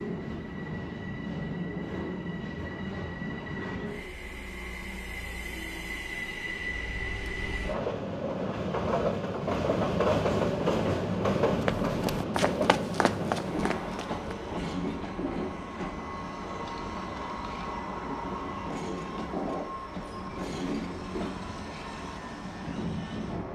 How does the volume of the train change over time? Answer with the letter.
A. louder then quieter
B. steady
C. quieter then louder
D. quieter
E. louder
A.